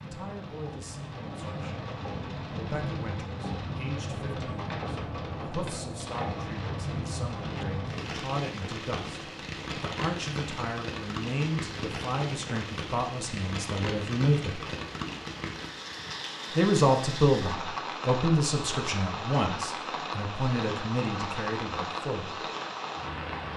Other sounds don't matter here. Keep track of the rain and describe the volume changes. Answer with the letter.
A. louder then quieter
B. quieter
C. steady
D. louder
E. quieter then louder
C.